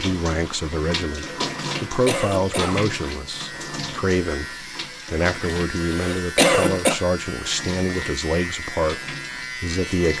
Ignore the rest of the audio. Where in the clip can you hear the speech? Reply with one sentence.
The speech can be heard from 0.0 to 10.1 s.